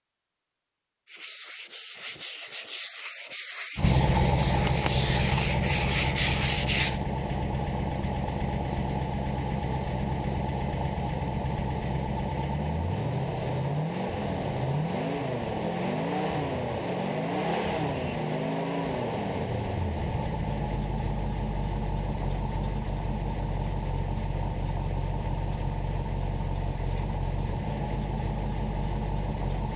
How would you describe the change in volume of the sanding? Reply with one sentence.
The volume of the sanding goes up.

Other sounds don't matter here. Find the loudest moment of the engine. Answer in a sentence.
The volume of the engine peaks at 4 seconds.